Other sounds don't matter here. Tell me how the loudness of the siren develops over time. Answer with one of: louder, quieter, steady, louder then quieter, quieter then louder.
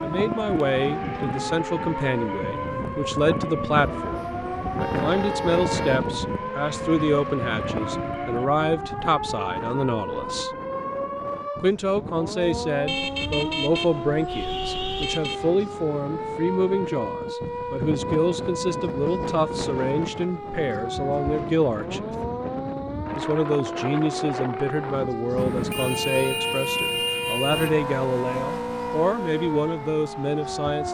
steady.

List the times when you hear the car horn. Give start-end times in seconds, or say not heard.
3.9-6.0, 12.8-15.5, 25.4-27.8.